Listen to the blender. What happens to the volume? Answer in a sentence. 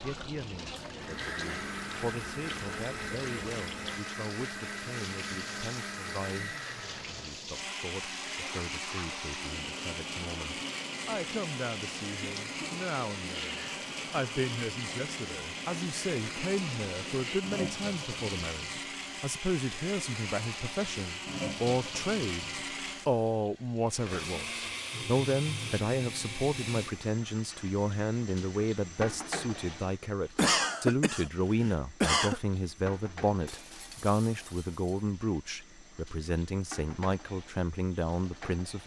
The loudness of the blender stays about the same.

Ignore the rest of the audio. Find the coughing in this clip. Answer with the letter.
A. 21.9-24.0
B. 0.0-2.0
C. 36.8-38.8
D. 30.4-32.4
D.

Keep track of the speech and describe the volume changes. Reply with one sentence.
The volume of the speech goes up.